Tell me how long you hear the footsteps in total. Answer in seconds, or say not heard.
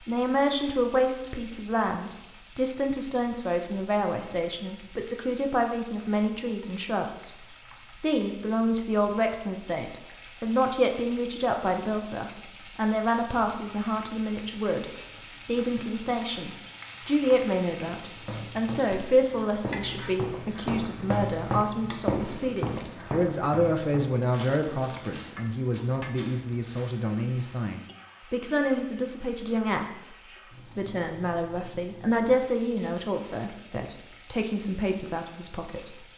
10 s.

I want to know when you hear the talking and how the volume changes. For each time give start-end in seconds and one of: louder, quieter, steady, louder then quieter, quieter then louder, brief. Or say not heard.
0.0-30.1 steady
30.8-36.0 louder then quieter.